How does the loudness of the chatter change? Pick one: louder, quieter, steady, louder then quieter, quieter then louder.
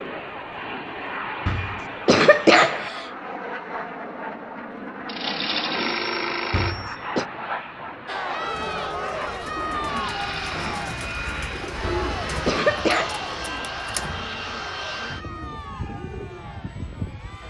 quieter.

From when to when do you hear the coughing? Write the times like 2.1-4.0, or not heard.
1.4-3.1, 6.5-7.2, 11.8-13.2.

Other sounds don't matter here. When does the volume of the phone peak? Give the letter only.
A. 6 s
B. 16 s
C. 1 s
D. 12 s
A.